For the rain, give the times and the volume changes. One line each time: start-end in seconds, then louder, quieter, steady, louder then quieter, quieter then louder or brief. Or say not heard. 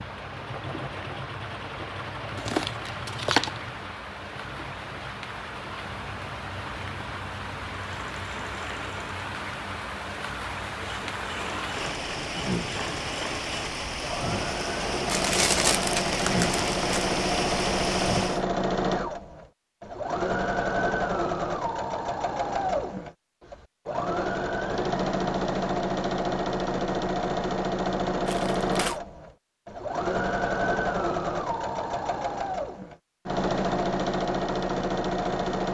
0.0-18.4 louder.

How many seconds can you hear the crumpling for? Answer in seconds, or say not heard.
4 s.